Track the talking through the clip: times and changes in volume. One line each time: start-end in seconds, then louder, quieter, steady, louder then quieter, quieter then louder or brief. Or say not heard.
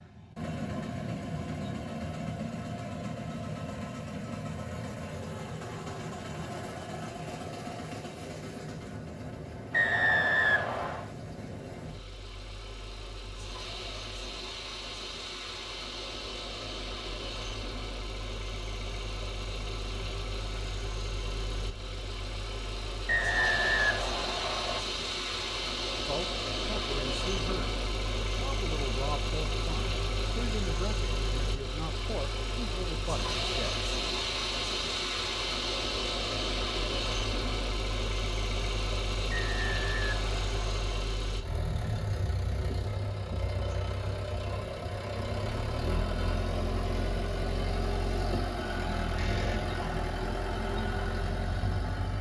26.1-33.9 steady.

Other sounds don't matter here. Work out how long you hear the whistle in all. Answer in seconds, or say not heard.
5 s.